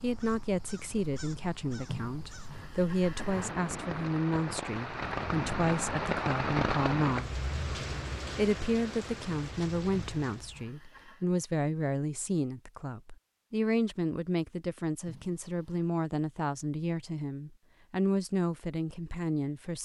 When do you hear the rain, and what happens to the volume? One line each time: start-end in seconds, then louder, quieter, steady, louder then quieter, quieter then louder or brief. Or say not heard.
0.0-10.7 louder then quieter.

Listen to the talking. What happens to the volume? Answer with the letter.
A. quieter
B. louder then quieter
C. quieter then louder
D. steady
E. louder
D.